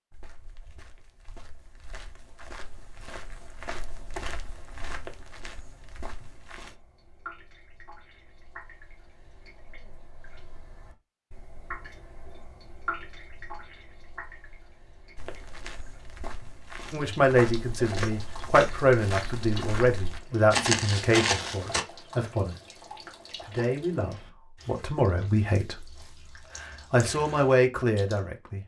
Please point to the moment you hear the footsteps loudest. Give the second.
21 s.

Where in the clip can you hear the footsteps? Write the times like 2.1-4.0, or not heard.
0.1-6.8, 15.2-21.9.